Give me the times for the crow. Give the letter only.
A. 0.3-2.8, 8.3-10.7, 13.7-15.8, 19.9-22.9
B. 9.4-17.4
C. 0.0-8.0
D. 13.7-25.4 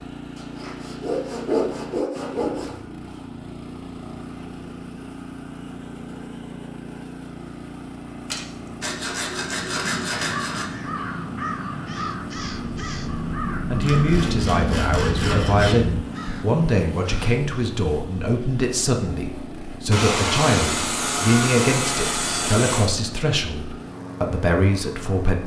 B.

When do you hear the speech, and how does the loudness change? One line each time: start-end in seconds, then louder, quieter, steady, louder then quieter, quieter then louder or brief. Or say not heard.
13.7-25.4 steady.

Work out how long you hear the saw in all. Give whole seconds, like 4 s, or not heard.
10 s.